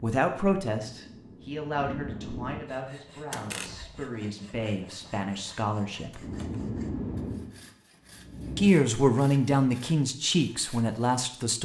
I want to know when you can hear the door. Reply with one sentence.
You can hear the door from 3.3 to 4.0 s and from 6.2 to 6.7 s.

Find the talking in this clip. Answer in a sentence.
You can hear the talking from 0.0 to 6.2 s and from 8.6 to 11.6 s.